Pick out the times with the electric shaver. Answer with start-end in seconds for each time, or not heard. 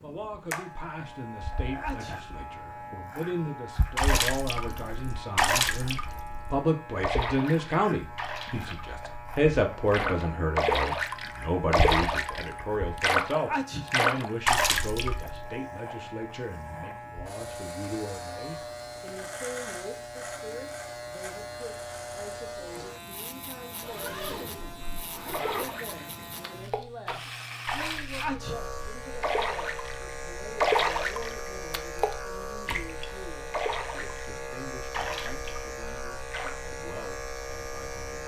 0.0-38.2.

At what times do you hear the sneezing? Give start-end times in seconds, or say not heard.
1.8-2.2, 13.4-13.8, 28.2-28.6.